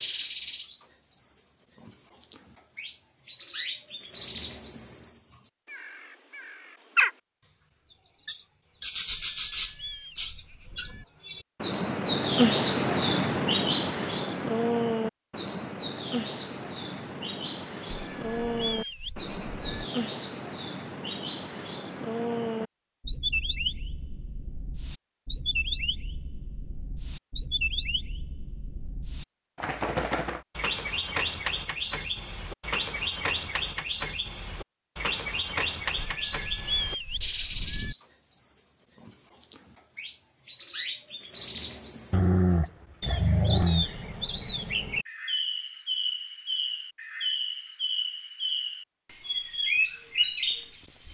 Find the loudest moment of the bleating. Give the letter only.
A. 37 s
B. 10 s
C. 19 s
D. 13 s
A.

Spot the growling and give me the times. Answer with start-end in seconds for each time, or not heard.
42.1-43.9.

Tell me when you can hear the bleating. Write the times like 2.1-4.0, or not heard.
9.1-11.1, 17.9-19.9, 36.0-38.0.